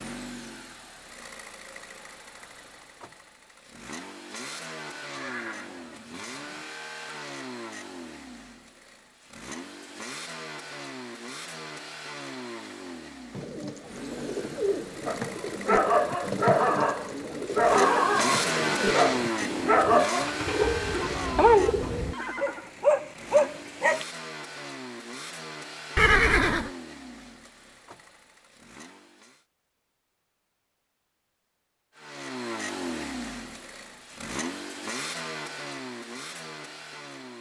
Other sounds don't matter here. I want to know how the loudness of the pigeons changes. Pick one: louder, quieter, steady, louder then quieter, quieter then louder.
steady.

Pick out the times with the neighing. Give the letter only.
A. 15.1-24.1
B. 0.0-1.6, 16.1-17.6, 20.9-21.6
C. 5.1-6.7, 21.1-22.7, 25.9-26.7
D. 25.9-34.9
C.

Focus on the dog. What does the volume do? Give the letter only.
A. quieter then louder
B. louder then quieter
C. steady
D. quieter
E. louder
C.